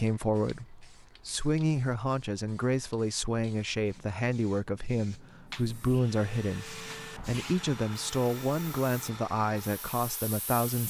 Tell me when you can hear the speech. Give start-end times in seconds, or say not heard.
0.0-10.8.